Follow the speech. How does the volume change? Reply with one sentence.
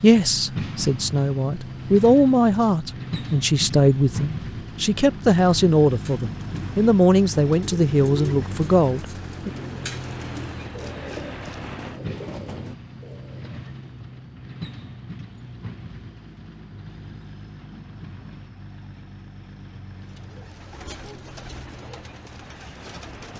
The loudness of the speech stays about the same.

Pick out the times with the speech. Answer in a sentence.
The speech can be heard from 0.0 to 9.5 s.